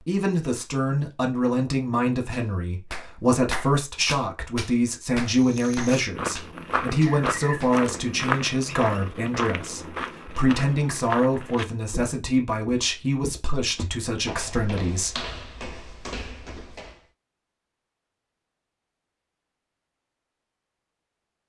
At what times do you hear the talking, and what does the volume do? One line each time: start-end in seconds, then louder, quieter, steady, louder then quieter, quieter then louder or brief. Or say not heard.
0.1-15.2 steady.